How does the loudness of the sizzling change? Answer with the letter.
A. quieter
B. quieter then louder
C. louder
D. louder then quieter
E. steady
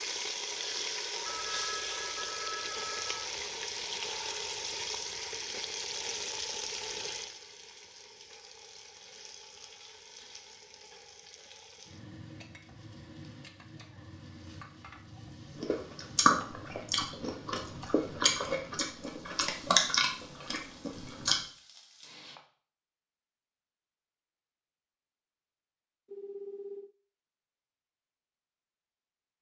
A.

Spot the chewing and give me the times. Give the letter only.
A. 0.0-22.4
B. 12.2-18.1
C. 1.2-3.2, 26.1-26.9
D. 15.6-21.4
D.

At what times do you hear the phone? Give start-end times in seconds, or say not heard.
1.2-3.2, 26.1-26.9.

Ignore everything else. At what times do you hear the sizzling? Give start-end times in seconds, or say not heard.
0.0-22.4.